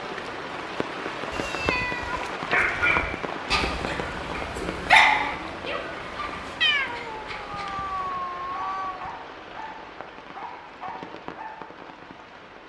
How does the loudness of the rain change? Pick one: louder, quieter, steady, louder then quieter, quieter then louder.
quieter.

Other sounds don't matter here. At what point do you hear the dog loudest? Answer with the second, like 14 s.
5 s.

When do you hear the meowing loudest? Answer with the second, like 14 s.
7 s.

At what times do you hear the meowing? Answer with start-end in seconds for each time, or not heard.
1.3-2.3, 6.6-9.1.